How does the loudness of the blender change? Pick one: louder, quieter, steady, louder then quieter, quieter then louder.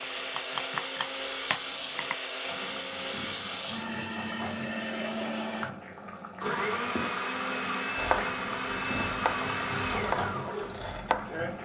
steady.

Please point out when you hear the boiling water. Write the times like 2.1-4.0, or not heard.
2.5-11.6.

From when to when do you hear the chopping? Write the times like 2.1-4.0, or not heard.
0.0-2.1, 8.0-11.6.